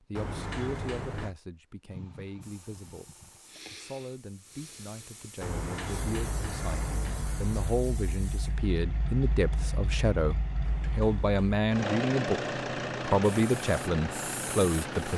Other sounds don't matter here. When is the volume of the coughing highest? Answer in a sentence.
The volume of the coughing peaks at 2 seconds.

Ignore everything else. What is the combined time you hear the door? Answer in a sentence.
You can hear the door for 5 seconds altogether.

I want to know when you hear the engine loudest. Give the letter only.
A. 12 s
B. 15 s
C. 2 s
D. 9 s
A.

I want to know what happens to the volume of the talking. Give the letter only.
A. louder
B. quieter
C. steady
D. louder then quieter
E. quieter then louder
A.